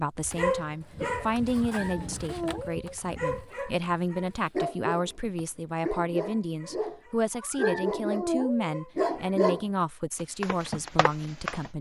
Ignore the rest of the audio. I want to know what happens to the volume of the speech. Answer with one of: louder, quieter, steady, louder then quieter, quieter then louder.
steady.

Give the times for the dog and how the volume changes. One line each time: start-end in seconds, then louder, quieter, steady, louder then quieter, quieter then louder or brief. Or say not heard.
0.2-9.7 louder
10.4-11.7 brief.